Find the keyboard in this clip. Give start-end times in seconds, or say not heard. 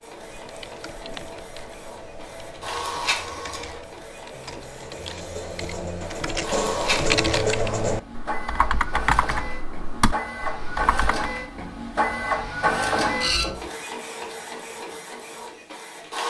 0.0-11.3.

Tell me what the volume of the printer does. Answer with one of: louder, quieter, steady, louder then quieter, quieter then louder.
quieter then louder.